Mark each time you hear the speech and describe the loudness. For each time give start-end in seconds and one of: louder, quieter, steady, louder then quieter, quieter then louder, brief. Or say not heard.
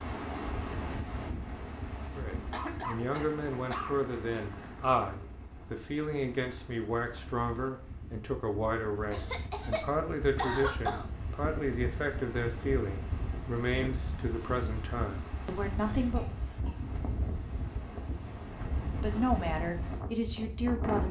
2.1-16.4 steady
18.8-21.0 brief.